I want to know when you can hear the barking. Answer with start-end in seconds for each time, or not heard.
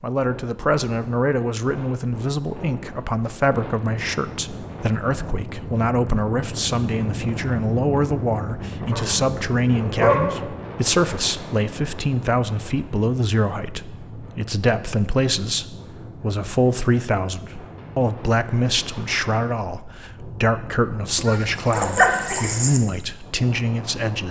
8.9-10.4, 21.1-22.8.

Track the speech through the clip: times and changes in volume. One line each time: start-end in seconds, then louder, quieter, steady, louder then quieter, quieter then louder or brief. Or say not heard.
0.0-24.2 steady.